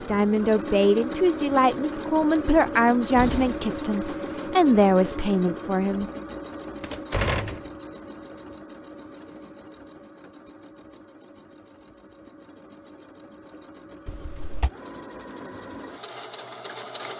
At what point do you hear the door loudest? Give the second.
7 s.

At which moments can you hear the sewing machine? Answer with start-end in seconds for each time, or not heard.
0.0-17.1.